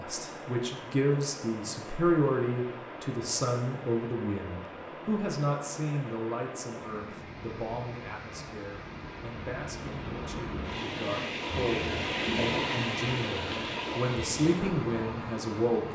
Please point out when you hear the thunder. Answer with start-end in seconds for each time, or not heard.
not heard.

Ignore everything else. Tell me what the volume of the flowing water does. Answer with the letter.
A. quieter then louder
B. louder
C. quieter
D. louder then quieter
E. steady
B.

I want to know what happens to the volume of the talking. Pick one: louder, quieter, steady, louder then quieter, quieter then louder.
quieter then louder.